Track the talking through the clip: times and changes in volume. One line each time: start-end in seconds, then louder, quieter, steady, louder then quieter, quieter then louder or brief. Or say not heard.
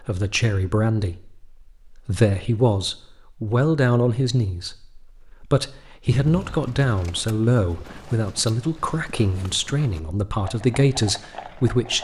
0.0-11.9 steady.